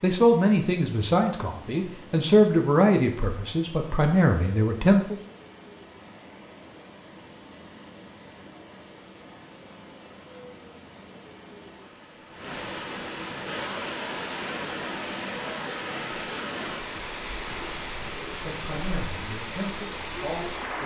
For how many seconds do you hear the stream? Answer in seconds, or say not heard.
21 s.